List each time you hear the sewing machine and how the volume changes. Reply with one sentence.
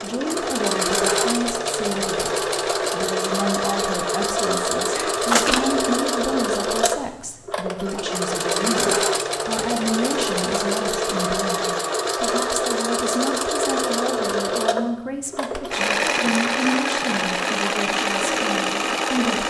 You can hear the sewing machine from 0.0 to 19.4 s, at a steady volume.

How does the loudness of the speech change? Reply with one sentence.
The volume of the speech stays about the same.